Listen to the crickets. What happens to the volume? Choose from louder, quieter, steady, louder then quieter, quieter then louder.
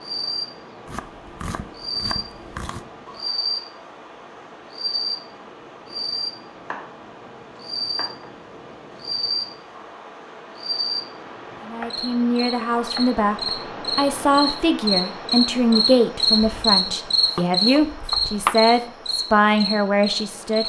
louder.